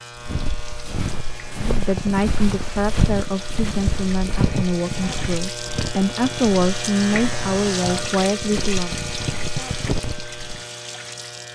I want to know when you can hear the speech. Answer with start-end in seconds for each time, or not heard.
1.6-8.9.